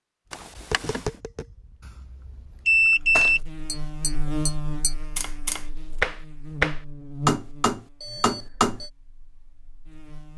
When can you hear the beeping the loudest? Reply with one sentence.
The volume of the beeping peaks at 3 seconds.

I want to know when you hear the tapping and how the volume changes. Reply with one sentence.
The tapping can be heard from 0.5 to 8.8 s, getting louder.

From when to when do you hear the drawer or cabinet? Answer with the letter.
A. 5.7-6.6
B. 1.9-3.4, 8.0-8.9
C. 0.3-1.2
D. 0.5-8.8
C.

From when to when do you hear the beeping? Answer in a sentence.
The beeping can be heard from 1.9 to 3.4 s and from 8.0 to 8.9 s.